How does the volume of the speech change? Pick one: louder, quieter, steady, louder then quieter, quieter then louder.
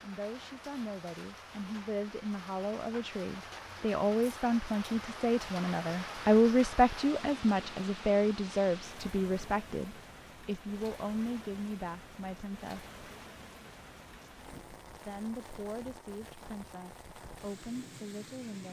louder then quieter.